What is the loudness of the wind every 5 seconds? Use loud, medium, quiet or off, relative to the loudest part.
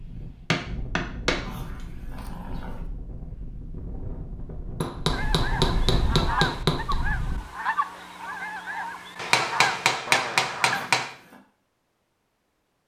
medium, loud, off.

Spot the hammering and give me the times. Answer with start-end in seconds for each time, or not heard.
0.5-1.4, 4.8-7.0, 9.2-11.1.